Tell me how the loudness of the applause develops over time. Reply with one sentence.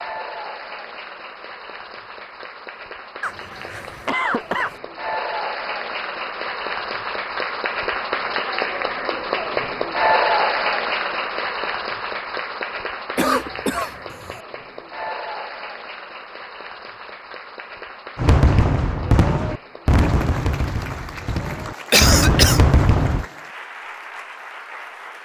The volume of the applause goes up, then down.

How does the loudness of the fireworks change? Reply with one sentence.
The loudness of the fireworks goes down, then up.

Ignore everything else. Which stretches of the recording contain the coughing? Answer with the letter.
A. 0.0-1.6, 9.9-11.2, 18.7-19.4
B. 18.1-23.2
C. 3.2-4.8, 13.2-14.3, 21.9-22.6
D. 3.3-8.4
C.